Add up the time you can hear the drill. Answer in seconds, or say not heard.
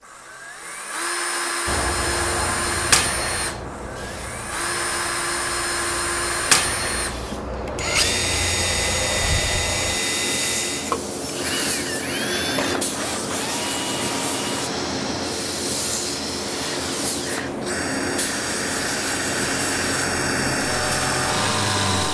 22 s.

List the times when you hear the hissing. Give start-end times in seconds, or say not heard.
1.6-22.0.